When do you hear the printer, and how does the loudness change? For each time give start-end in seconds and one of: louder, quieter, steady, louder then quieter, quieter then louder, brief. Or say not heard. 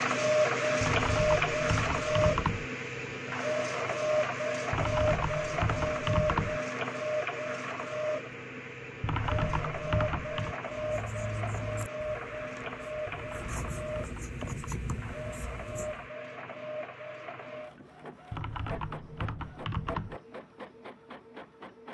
0.0-21.8 quieter.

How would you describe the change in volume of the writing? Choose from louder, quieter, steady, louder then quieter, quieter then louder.
quieter then louder.